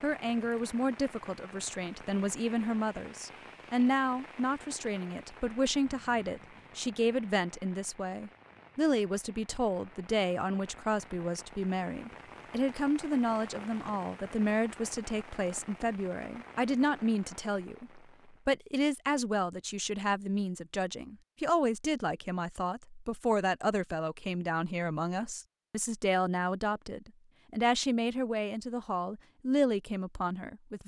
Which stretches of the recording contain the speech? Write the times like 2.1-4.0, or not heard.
0.0-30.8.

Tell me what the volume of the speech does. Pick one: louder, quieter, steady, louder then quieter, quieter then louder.
steady.